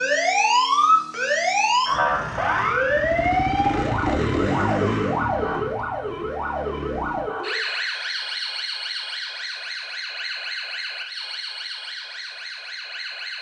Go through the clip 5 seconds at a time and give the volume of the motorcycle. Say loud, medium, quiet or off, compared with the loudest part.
loud, medium, off.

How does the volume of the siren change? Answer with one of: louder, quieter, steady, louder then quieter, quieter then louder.
quieter.